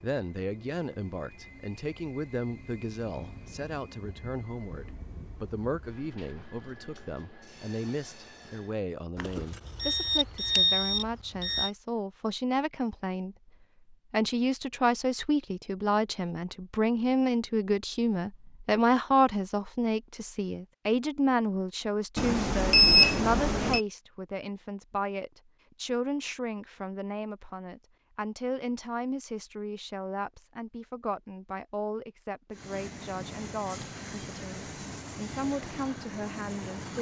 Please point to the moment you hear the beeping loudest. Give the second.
23 s.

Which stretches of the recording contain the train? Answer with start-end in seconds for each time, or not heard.
0.0-8.9, 32.5-36.9.